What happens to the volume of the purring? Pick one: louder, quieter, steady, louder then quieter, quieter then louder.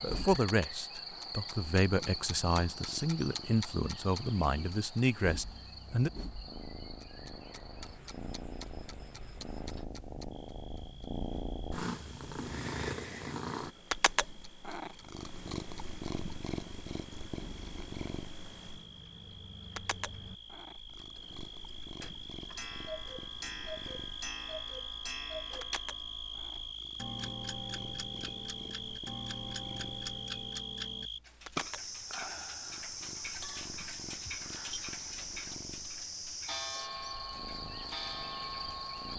louder then quieter.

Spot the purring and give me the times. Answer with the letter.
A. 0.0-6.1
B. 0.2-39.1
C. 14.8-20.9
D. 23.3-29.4
B.